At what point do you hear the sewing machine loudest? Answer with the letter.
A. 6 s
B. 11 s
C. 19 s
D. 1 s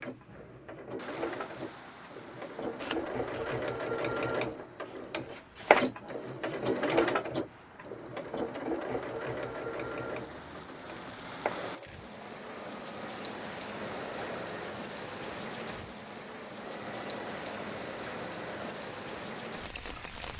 A.